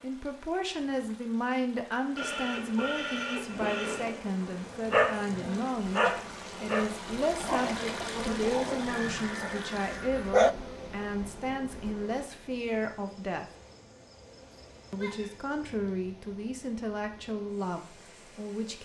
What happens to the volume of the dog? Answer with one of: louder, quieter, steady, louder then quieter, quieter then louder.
quieter.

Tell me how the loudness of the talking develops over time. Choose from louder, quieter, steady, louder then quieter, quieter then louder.
steady.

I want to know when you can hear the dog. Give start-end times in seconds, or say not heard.
4.9-10.6.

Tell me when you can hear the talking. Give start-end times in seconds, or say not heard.
0.0-13.4, 14.9-18.8.